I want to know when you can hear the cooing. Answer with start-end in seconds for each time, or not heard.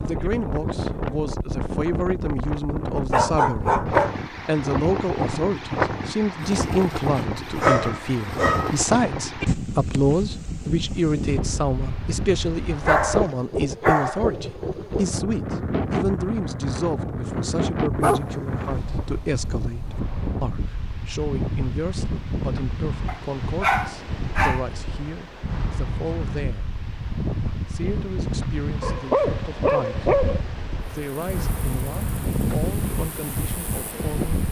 not heard.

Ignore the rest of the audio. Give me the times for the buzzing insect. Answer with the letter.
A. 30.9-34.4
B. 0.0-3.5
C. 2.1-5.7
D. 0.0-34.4
A.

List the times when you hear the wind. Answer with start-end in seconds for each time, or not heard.
0.0-34.4.